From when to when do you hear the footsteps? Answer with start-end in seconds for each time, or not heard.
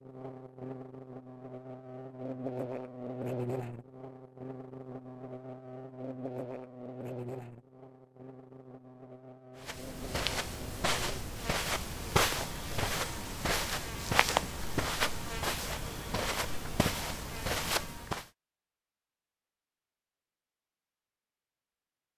9.6-18.2.